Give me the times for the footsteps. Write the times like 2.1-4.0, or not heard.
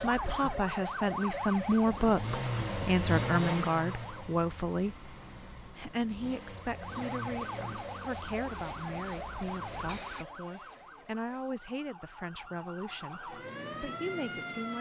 not heard.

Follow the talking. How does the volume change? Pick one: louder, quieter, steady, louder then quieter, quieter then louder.
quieter.